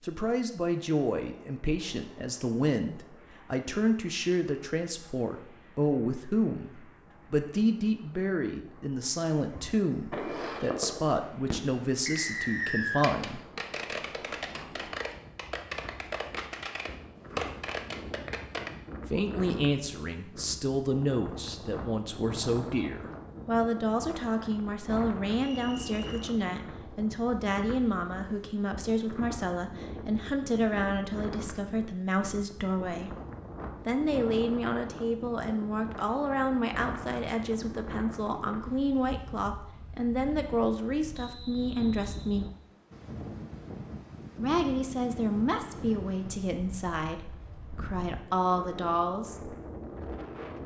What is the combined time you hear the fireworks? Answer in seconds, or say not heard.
9 s.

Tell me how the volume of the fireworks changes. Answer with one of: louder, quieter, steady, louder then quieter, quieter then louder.
quieter then louder.